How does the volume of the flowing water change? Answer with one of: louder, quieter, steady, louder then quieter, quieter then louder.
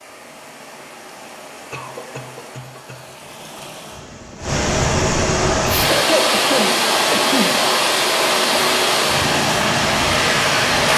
louder.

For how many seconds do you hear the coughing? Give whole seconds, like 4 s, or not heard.
3 s.